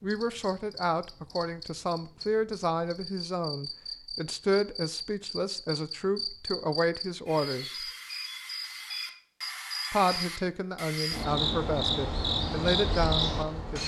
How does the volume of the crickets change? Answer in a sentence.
The volume of the crickets goes up.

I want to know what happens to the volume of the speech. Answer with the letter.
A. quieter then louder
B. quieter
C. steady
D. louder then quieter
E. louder
C.